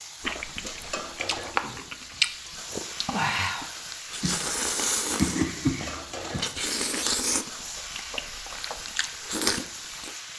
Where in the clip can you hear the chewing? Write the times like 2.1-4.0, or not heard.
0.2-10.2.